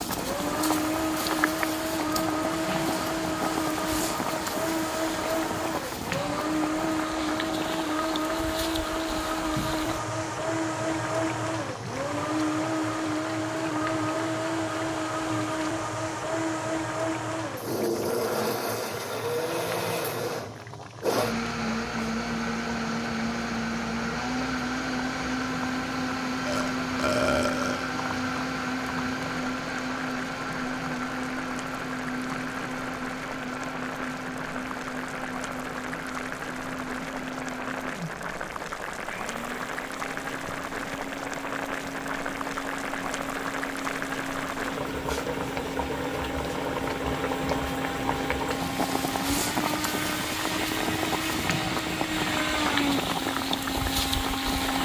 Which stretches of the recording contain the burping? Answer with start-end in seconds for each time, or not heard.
26.4-27.9.